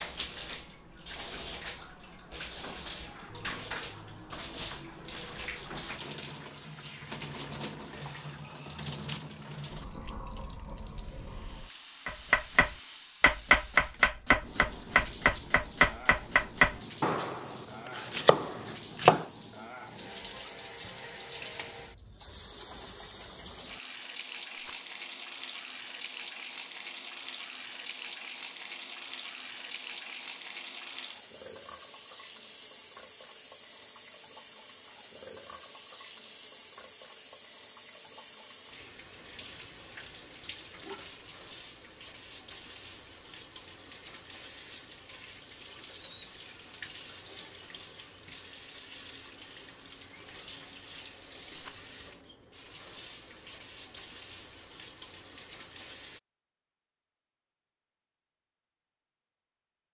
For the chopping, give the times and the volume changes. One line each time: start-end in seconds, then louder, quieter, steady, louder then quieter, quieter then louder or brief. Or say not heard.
12.1-19.3 quieter.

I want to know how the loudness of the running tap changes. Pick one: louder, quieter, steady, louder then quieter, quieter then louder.
steady.